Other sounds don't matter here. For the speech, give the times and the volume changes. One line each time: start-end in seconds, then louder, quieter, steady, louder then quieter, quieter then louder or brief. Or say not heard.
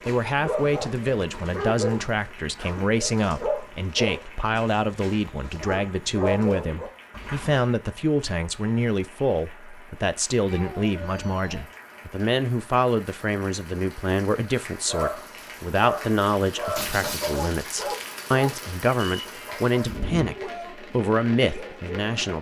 0.1-22.3 steady.